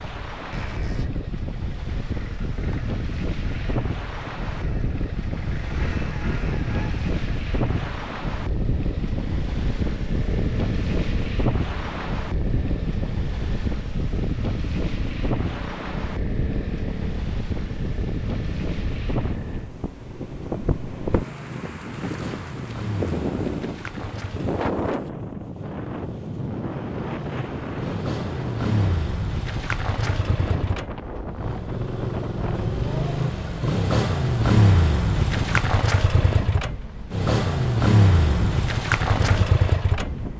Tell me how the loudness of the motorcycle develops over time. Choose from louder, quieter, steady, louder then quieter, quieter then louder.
louder.